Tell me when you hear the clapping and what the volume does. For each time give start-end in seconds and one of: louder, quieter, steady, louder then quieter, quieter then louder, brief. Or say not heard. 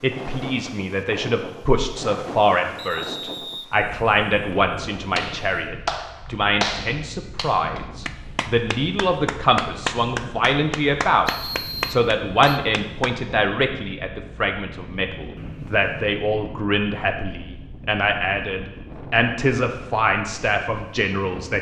5.2-13.1 quieter then louder.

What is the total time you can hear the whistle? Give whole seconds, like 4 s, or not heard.
3 s.